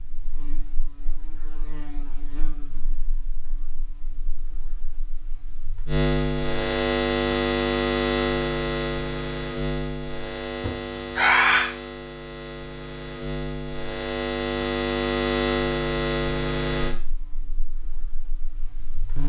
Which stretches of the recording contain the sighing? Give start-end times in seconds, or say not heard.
10.6-11.7.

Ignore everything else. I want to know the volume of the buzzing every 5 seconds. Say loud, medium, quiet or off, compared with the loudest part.
quiet, loud, medium, loud.